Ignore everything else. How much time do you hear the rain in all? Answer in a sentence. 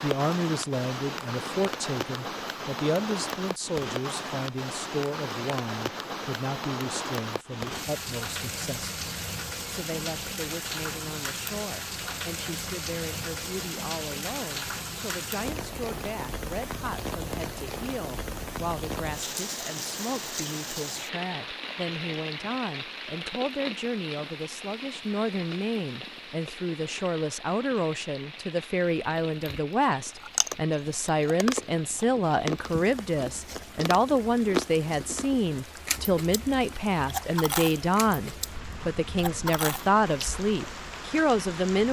You can hear the rain for 42 seconds altogether.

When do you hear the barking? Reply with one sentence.
You can't hear the barking here.